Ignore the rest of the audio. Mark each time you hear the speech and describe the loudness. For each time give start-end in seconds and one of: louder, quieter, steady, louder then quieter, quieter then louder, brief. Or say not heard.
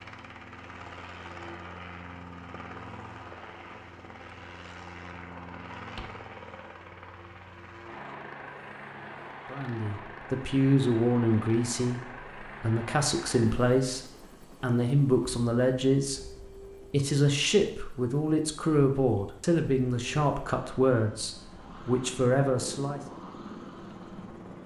9.5-23.0 steady.